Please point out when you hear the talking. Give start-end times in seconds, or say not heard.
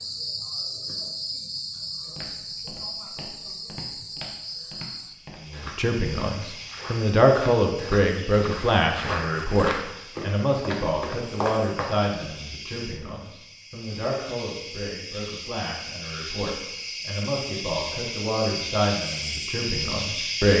5.5-20.5.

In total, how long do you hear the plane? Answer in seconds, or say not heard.
not heard.